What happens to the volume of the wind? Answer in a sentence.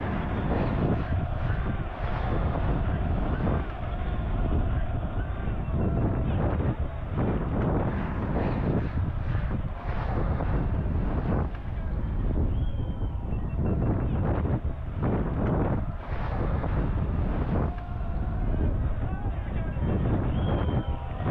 The volume of the wind stays about the same.